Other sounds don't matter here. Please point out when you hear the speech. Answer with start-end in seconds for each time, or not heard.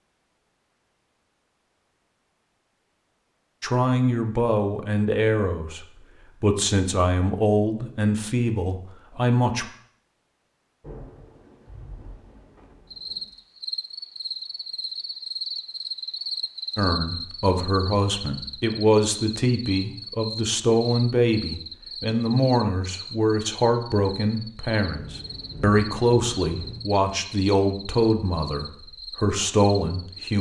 3.6-9.7, 16.8-30.3.